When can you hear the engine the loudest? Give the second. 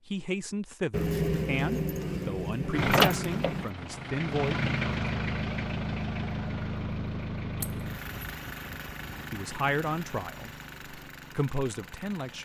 3 s.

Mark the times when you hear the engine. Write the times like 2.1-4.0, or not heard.
2.7-12.4.